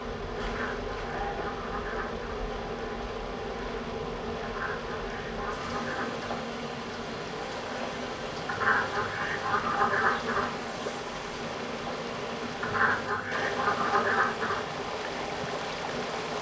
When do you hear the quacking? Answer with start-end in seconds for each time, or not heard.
0.5-2.2, 4.4-6.5, 8.4-10.5, 12.6-14.6.